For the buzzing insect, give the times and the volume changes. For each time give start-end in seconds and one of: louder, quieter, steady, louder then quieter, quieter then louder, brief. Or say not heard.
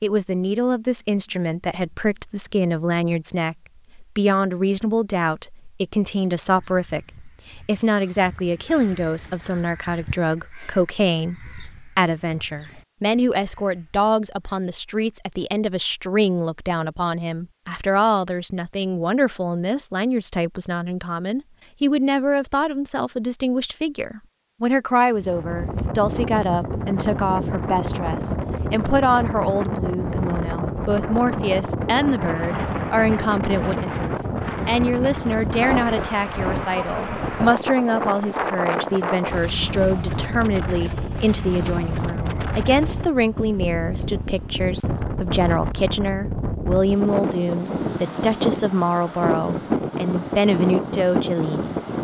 not heard.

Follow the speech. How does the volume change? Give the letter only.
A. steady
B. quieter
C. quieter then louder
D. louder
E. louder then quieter
A.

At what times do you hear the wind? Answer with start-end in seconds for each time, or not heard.
25.1-51.9.